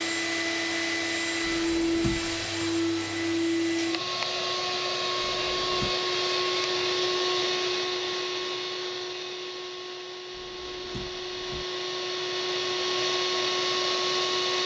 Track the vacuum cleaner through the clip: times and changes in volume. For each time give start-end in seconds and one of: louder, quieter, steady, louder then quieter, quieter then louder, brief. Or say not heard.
0.0-14.6 quieter then louder.